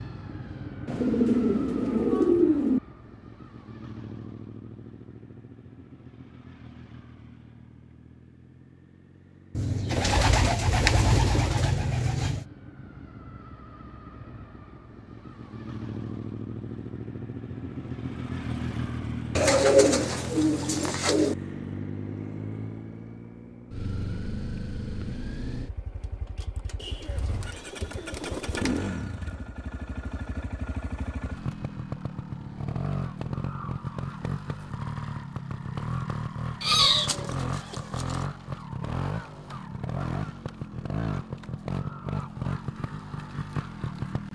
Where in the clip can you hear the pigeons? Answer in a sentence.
The pigeons can be heard from 0.8 to 2.8 s, from 9.6 to 12.4 s, from 19.4 to 21.4 s, from 26.8 to 28.8 s and from 36.6 to 38.2 s.